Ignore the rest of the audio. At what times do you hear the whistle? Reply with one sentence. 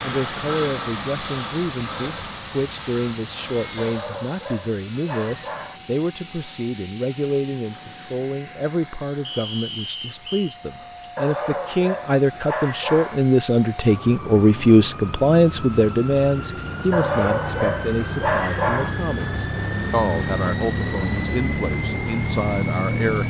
The whistle can be heard from 9.2 to 10.6 s.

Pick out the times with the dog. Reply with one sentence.
The dog can be heard from 3.8 to 5.8 s, from 11.2 to 13.2 s and from 16.9 to 18.9 s.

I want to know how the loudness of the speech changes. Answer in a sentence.
The volume of the speech goes up, then down.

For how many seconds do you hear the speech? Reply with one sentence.
You can hear the speech for 23 seconds altogether.